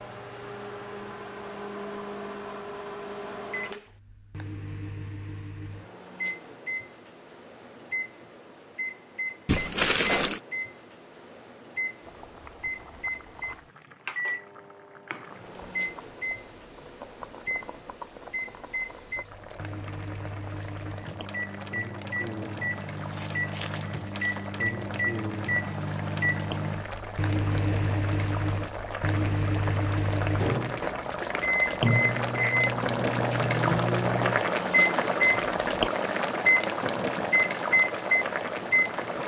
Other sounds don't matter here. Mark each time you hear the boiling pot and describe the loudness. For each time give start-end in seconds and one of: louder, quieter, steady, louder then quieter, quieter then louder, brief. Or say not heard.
12.0-39.2 louder.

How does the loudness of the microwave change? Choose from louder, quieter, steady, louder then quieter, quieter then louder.
louder.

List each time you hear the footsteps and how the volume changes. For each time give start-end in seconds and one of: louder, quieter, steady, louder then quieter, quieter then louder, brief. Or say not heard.
not heard.